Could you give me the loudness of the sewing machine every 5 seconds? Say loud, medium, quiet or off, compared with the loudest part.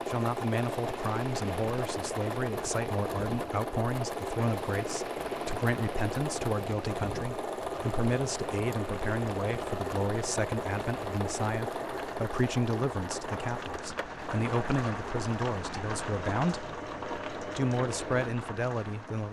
loud, loud, loud, medium.